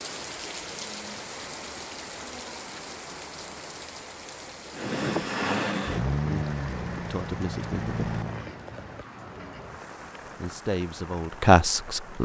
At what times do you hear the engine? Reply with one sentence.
You can hear the engine from 4.7 to 8.5 s.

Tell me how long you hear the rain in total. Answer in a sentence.
You can hear the rain for 12 seconds altogether.